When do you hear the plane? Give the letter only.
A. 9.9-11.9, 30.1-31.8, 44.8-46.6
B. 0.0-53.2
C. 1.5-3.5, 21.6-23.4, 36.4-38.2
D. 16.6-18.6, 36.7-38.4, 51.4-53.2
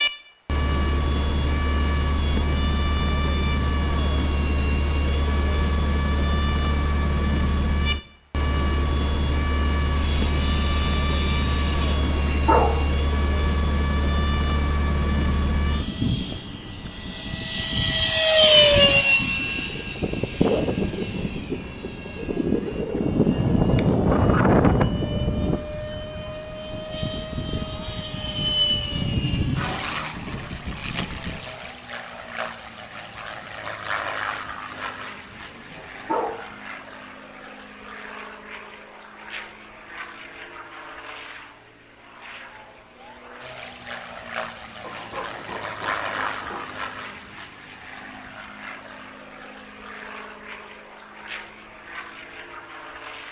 B.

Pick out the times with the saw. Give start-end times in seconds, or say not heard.
9.9-11.9, 30.1-31.8, 44.8-46.6.